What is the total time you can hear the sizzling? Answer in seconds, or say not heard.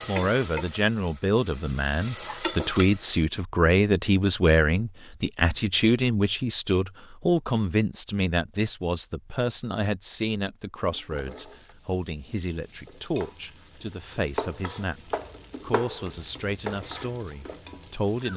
11 s.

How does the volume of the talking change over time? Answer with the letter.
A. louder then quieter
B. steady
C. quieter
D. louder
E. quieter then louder
C.